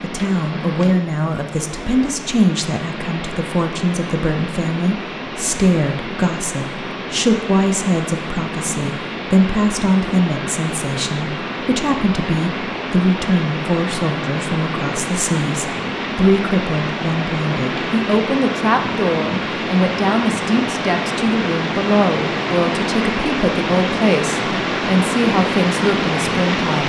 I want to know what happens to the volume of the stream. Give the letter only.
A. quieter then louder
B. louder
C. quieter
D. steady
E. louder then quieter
B.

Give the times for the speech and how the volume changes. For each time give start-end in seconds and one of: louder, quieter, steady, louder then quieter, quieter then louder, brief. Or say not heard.
0.0-26.8 steady.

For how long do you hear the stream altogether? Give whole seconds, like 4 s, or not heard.
27 s.